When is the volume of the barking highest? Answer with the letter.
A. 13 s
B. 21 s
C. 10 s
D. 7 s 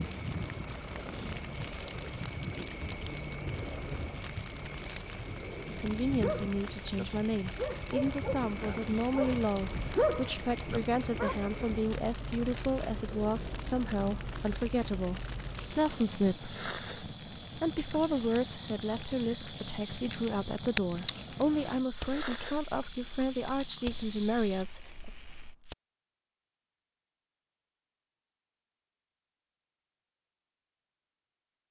C.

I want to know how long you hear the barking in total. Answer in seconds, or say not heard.
5 s.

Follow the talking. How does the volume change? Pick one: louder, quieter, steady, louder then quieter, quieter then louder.
steady.